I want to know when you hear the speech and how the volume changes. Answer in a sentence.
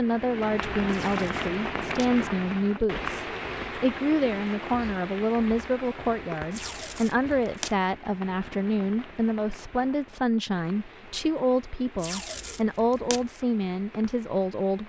You can hear the speech from 0.0 to 14.8 s, at a steady volume.